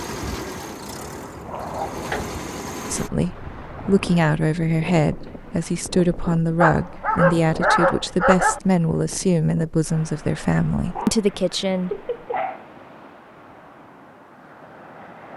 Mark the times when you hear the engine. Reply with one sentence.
The engine can be heard from 0.0 to 3.1 s.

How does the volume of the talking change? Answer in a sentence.
The loudness of the talking stays about the same.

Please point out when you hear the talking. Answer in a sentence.
The talking can be heard from 2.9 to 12.0 s.